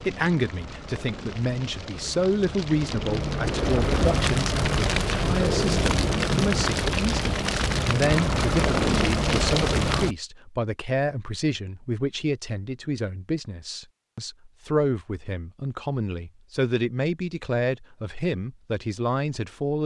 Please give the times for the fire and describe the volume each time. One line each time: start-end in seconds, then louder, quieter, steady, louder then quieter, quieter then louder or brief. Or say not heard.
0.0-10.2 louder.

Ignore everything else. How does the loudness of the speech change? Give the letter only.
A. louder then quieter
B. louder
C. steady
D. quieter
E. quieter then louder
C.